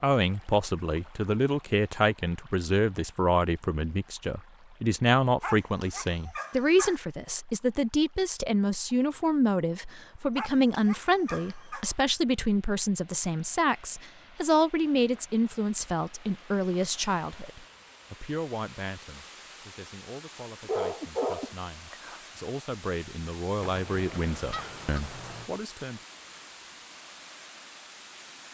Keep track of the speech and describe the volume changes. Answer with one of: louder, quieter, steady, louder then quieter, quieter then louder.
quieter.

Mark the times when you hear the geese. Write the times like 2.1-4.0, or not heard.
23.6-25.5.